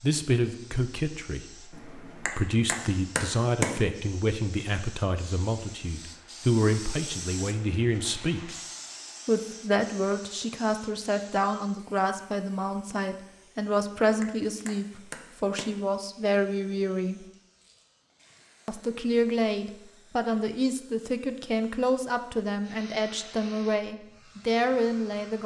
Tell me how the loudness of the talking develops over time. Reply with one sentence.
The volume of the talking stays about the same.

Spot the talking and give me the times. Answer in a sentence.
You can hear the talking from 0.0 to 8.6 s, from 9.2 to 17.2 s and from 18.6 to 25.4 s.